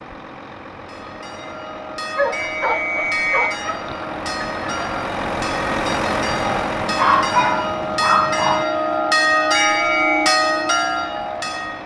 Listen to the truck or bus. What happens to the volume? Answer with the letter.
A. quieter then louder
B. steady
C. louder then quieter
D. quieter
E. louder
C.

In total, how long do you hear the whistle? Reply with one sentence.
You can hear the whistle for 2 seconds altogether.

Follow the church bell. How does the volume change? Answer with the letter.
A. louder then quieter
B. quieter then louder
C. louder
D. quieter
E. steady
C.